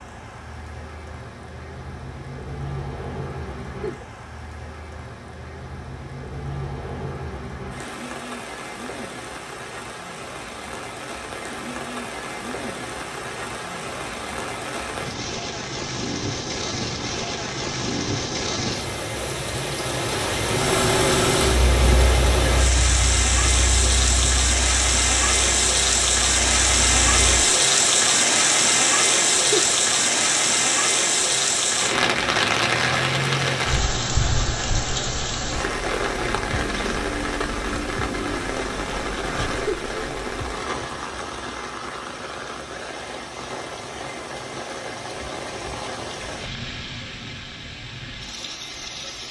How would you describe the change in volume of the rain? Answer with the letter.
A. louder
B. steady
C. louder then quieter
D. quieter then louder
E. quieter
C.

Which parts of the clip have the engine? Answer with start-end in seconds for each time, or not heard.
20.4-27.4.